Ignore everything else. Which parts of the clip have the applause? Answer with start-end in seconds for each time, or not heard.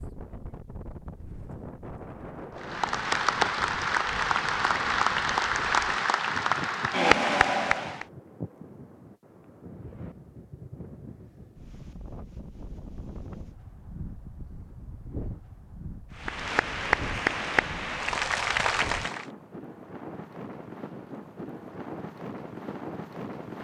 2.5-8.1, 16.1-19.2.